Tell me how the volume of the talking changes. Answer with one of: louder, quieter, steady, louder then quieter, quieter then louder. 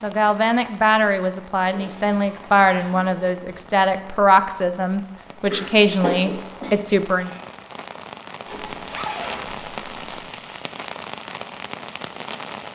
steady.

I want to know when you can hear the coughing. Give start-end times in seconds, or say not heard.
5.5-6.7.